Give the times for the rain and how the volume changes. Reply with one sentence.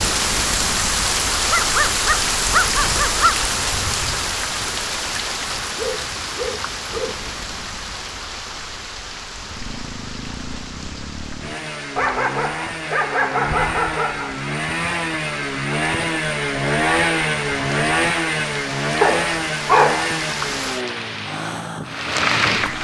The rain can be heard from 0.0 to 22.7 s, getting quieter then louder.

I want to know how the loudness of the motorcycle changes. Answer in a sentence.
The volume of the motorcycle goes up, then down.